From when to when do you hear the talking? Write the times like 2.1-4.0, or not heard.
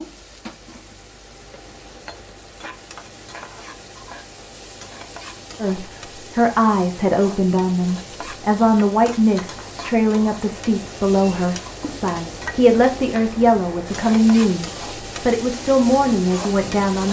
5.6-17.0.